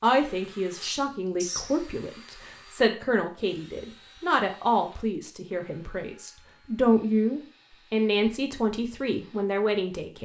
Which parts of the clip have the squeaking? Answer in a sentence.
The squeaking can be heard from 0.8 to 1.9 s.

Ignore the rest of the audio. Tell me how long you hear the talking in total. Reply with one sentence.
You can hear the talking for 10 seconds altogether.